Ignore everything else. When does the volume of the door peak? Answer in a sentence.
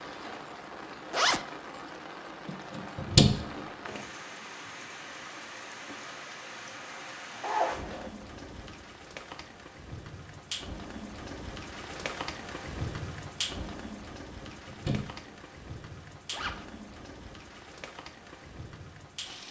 The volume of the door peaks at 3 seconds.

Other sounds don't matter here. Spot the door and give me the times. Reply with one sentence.
You can hear the door from 2.8 to 4.0 s and from 14.4 to 15.1 s.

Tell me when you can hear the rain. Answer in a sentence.
You can hear the rain from 0.0 to 19.4 s.